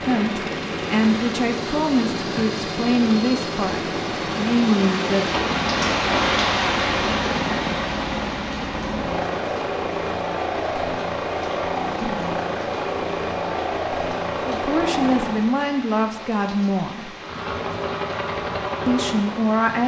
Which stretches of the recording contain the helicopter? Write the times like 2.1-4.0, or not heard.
0.0-15.5, 17.2-19.8.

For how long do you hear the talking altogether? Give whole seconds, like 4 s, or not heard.
9 s.